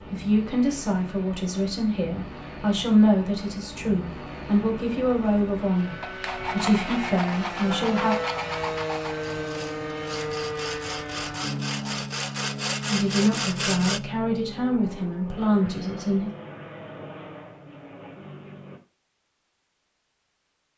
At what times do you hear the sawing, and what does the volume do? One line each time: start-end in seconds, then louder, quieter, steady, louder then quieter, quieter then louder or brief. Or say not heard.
5.8-14.0 quieter then louder.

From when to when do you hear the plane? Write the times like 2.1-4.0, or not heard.
0.0-18.8.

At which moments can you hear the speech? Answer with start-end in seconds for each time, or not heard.
0.1-8.2, 12.8-16.3.